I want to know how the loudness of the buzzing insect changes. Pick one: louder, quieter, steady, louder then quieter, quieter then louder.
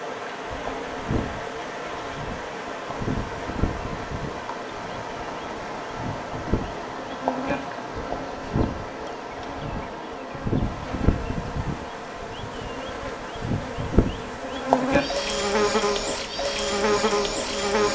louder.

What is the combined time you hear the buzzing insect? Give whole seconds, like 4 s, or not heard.
18 s.